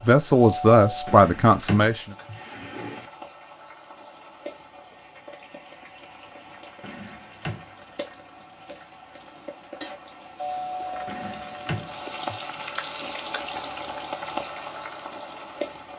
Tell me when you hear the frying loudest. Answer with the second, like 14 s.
14 s.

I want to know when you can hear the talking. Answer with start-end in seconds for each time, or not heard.
0.0-2.0.